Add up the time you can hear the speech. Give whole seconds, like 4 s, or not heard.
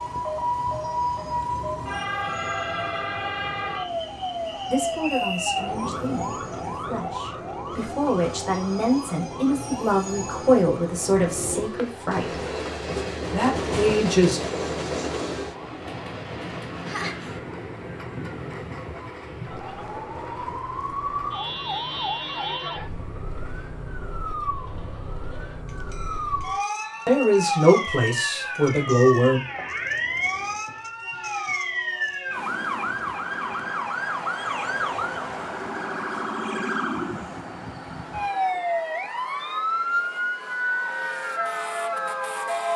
11 s.